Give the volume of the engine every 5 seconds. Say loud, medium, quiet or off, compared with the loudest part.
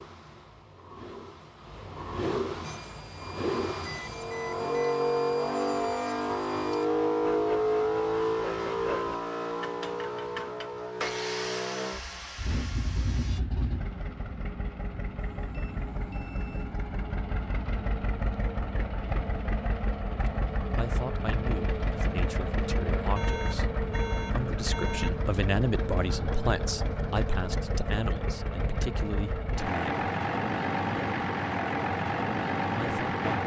medium, loud, medium, medium, medium, medium, loud.